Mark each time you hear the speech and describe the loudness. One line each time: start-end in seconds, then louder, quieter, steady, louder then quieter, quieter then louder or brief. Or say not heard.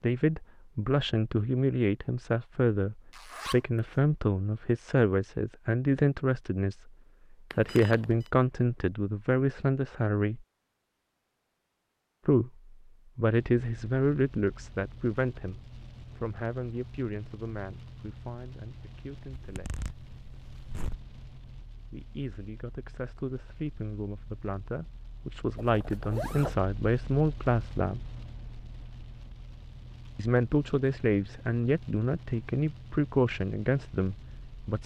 0.0-10.4 steady
12.2-19.8 quieter
21.9-28.0 louder
30.1-34.8 steady.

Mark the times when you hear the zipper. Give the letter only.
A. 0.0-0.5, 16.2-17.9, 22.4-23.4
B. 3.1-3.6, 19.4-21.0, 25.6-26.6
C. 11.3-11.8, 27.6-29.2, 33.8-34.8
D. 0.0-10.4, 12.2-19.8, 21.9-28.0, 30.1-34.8
B.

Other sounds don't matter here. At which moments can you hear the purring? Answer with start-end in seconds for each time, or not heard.
not heard.